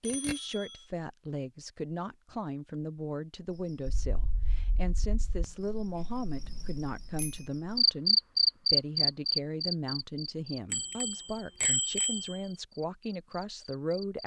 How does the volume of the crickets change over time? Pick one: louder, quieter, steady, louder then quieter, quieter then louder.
louder then quieter.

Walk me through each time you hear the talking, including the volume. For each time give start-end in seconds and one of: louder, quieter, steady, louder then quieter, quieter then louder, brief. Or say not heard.
0.0-14.2 steady.